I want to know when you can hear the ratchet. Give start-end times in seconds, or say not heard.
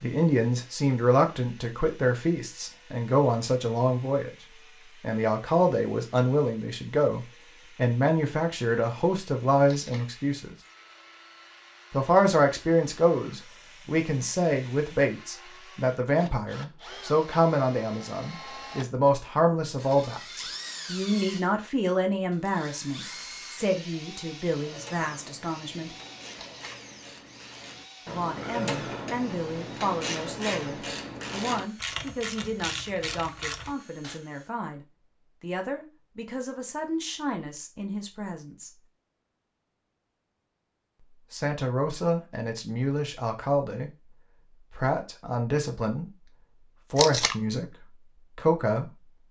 24.6-34.2.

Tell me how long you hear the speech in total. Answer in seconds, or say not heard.
43 s.